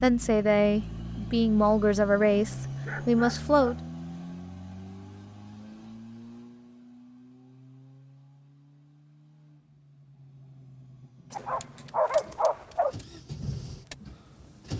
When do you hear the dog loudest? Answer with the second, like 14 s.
12 s.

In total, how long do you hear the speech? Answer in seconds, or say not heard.
4 s.